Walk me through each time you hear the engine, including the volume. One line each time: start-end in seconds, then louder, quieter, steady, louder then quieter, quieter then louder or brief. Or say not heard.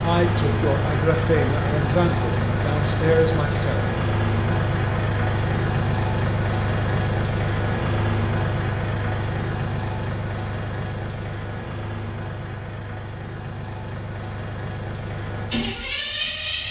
0.0-16.6 quieter.